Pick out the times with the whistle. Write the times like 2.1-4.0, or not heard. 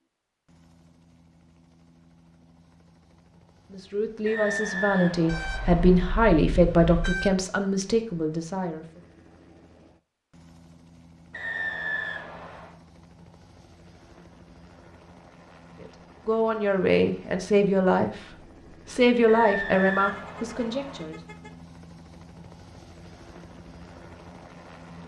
4.2-6.0, 11.3-12.8, 19.2-21.0.